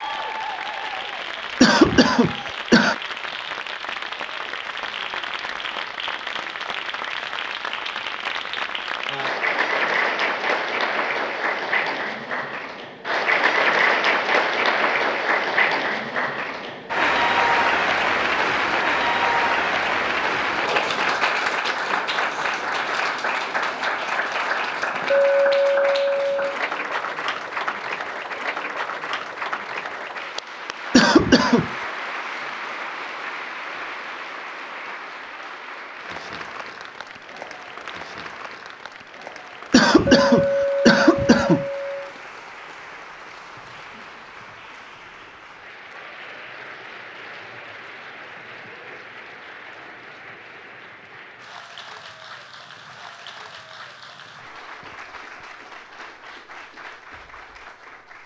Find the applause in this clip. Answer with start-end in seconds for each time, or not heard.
0.0-58.2.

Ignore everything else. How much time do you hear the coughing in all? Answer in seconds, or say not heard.
4 s.